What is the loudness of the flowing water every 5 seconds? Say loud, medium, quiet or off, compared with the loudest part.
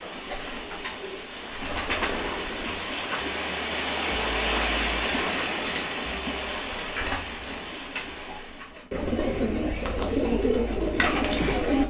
loud, loud, off.